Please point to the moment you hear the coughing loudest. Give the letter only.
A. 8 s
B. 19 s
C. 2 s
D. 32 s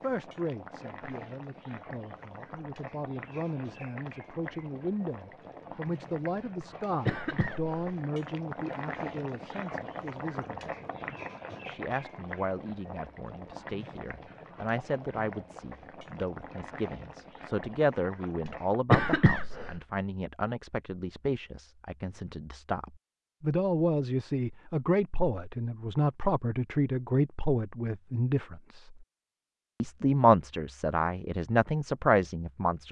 B.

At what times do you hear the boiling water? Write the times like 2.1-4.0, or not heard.
0.0-18.9.